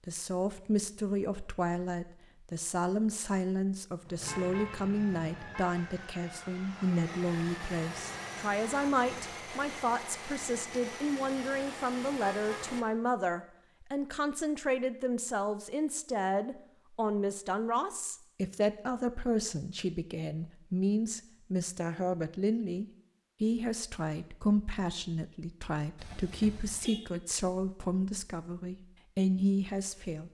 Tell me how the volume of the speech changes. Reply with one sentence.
The volume of the speech stays about the same.